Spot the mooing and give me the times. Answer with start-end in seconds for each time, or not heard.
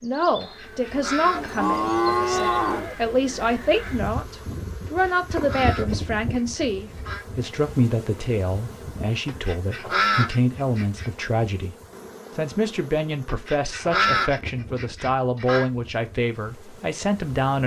1.3-3.0.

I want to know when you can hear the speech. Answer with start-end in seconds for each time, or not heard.
0.0-11.8, 12.3-17.6.